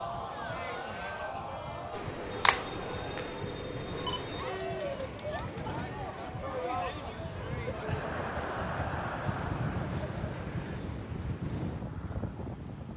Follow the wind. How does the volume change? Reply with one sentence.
The volume of the wind goes up.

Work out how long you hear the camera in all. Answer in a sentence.
You can hear the camera for 3 seconds altogether.